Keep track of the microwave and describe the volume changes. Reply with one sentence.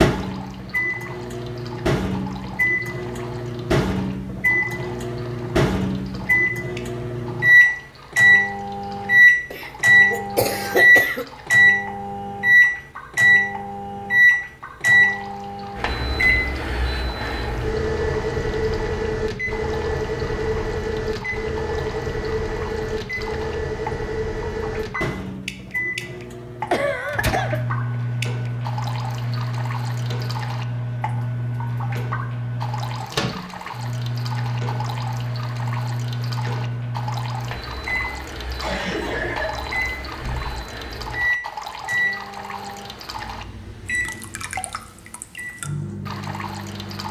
The loudness of the microwave goes down.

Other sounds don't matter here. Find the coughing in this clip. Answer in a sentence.
The coughing can be heard from 9.5 to 11.2 s, from 26.7 to 27.6 s and from 38.6 to 40.5 s.